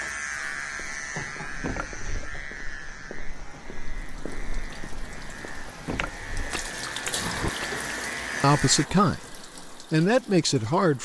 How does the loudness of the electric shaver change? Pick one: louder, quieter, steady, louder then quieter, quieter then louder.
quieter then louder.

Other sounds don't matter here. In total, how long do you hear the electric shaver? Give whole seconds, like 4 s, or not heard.
9 s.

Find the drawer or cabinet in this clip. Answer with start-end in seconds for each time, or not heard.
1.4-2.5, 5.7-7.5.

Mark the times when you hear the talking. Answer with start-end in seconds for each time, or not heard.
8.4-11.0.